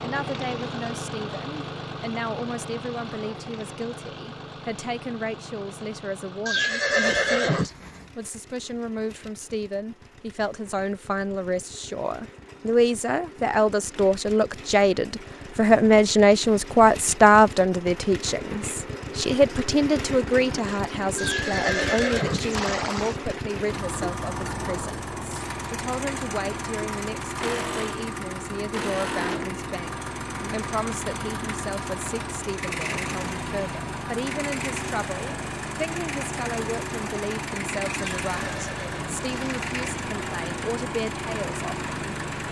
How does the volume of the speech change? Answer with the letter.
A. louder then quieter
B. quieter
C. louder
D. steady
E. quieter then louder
A.